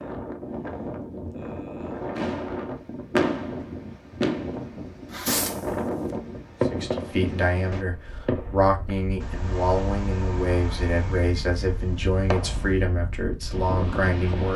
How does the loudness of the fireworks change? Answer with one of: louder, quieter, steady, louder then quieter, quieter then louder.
quieter.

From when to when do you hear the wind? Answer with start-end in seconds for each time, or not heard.
0.0-14.5.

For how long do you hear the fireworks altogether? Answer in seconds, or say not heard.
10 s.